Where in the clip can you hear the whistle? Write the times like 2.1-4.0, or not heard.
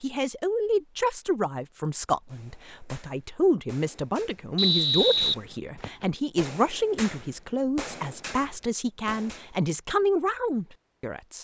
4.5-6.0.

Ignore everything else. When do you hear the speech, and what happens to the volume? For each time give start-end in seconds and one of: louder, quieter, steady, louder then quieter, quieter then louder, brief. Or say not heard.
0.0-11.3 steady.